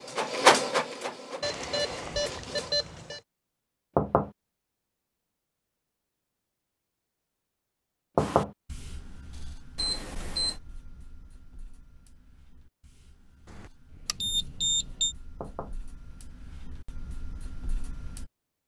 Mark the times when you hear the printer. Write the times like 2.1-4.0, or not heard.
0.0-2.8.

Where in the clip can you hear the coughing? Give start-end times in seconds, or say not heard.
not heard.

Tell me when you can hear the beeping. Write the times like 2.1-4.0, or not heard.
1.4-3.2, 9.8-10.6, 13.6-15.2.